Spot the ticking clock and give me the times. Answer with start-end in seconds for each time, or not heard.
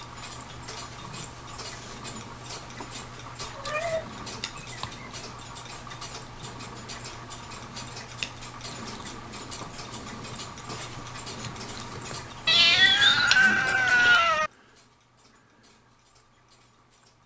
0.0-17.2.